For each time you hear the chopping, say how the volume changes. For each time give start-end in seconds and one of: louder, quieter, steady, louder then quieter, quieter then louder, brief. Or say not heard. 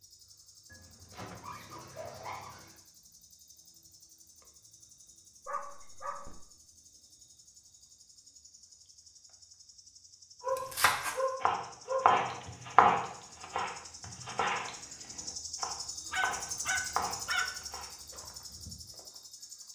10.6-18.3 quieter.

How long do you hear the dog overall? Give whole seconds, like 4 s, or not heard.
6 s.